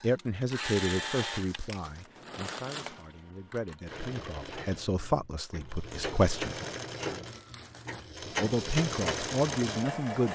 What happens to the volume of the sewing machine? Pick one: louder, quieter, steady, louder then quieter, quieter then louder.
quieter then louder.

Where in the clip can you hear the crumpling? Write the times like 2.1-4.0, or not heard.
0.5-3.0, 7.2-8.2.